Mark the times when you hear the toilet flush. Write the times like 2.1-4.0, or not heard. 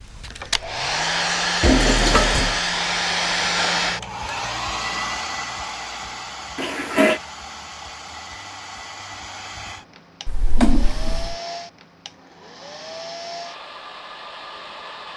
1.6-2.6, 6.5-7.2, 10.2-11.3.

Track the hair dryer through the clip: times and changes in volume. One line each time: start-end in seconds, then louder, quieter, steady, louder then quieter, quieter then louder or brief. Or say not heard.
0.0-15.1 quieter.